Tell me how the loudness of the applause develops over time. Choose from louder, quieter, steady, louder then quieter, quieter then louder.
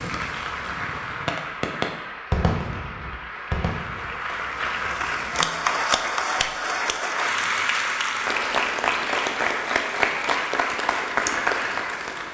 louder.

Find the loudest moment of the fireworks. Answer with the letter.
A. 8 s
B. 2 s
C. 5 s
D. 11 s
B.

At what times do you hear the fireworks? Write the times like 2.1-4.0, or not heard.
0.0-4.2.